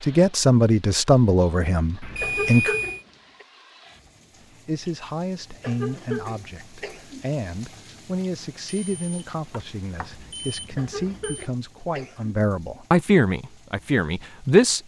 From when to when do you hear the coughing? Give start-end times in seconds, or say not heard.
1.9-3.5, 5.6-7.2, 10.8-12.3.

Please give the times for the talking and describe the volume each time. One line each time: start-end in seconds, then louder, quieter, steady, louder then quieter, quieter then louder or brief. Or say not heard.
0.0-2.8 brief
4.7-14.8 louder.